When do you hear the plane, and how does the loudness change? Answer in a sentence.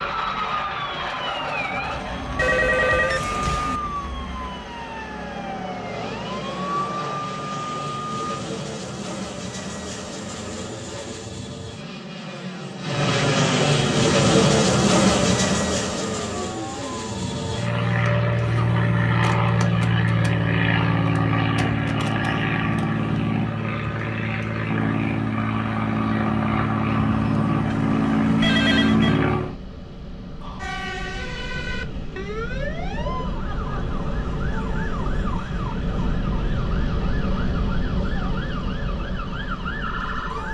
You can hear the plane from 0.0 to 40.5 s, getting louder then quieter.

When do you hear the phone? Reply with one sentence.
You can hear the phone from 2.4 to 3.8 s and from 27.7 to 29.2 s.